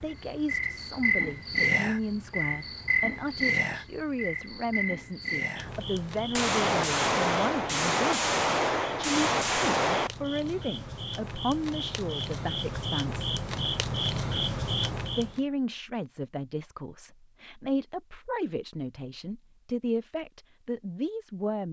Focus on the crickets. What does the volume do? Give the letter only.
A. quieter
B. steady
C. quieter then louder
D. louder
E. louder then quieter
C.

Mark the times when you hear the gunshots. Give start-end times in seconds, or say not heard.
6.3-10.1.